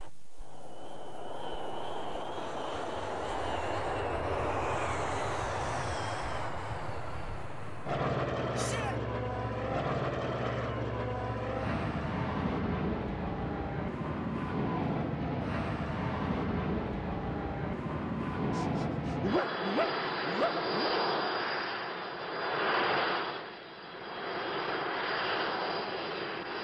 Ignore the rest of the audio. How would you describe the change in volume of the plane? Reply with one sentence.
The loudness of the plane stays about the same.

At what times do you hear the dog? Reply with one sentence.
You can hear the dog from 18.6 to 20.9 s.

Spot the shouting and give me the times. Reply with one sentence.
You can hear the shouting from 8.6 to 9.0 s.